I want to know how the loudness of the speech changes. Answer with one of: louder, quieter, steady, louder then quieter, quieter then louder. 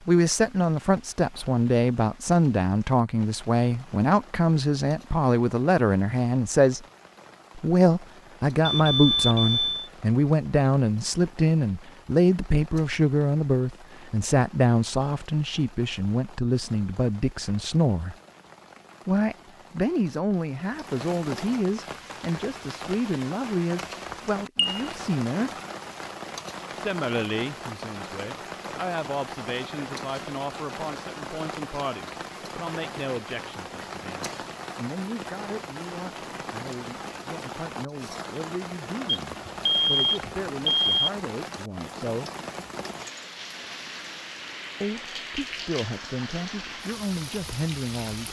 quieter.